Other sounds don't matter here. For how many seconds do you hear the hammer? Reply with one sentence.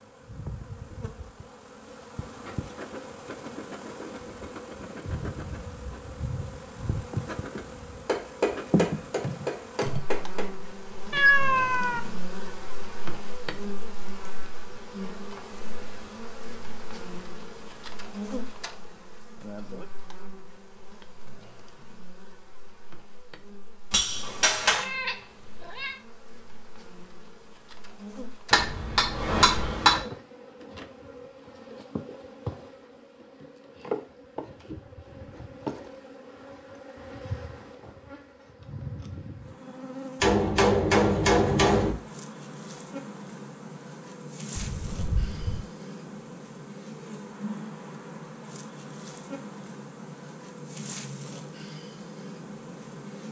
You can hear the hammer for 7 seconds altogether.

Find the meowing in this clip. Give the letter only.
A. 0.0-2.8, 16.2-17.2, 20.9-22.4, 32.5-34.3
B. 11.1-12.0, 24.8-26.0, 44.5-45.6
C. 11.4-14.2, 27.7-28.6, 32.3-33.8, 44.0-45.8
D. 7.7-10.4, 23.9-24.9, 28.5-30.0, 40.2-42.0
B.